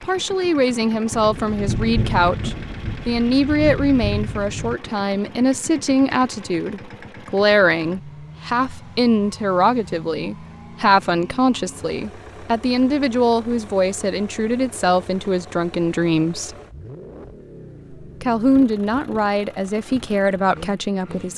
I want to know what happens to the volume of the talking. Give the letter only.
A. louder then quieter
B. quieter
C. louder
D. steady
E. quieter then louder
D.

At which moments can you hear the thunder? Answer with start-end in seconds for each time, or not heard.
1.1-4.8.